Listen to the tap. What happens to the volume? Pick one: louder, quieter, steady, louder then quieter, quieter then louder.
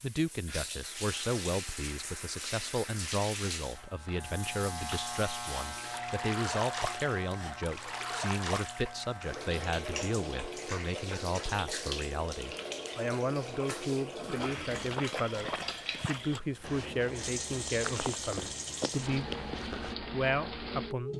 steady.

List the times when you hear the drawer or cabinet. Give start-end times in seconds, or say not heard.
not heard.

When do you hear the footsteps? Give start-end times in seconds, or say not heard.
14.4-19.9.